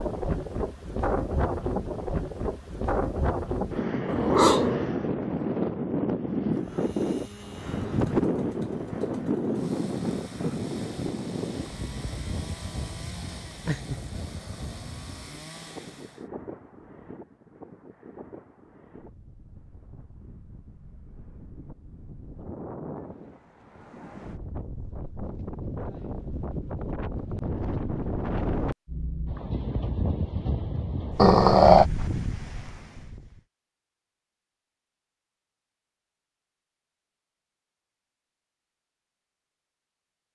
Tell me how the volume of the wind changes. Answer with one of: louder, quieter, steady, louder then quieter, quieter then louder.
quieter then louder.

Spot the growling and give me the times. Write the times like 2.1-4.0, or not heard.
4.0-4.9, 13.7-14.8, 31.1-31.9.